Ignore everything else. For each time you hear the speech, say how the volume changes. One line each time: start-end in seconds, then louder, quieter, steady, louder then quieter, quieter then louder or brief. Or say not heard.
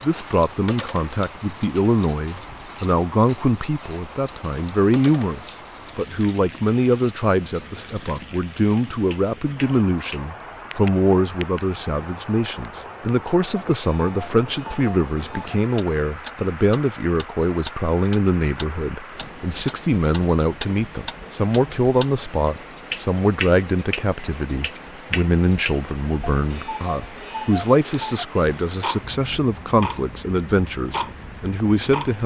0.0-32.2 steady.